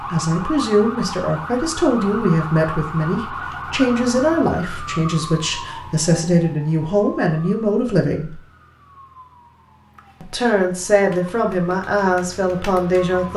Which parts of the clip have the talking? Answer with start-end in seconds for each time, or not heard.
0.1-8.3, 10.2-13.3.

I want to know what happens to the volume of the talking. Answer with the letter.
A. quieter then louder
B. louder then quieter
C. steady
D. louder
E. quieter
C.